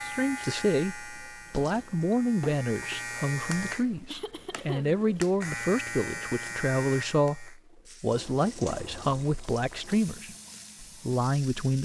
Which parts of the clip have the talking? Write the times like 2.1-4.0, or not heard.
0.0-11.8.